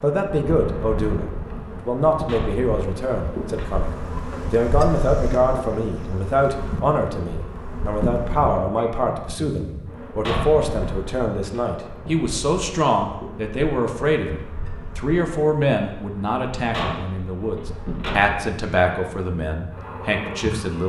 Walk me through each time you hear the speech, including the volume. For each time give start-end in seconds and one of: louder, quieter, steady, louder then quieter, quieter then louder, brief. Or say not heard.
0.0-20.8 steady.